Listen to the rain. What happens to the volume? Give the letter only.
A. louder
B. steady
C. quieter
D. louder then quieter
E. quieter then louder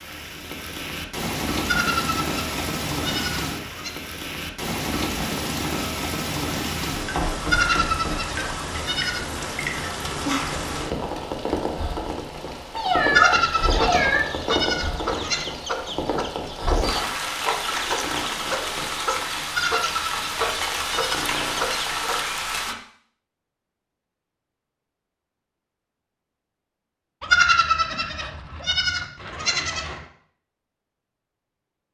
B.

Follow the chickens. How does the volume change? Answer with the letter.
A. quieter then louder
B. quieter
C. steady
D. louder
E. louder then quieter
C.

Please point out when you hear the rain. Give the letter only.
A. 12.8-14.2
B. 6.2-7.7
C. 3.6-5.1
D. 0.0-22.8
D.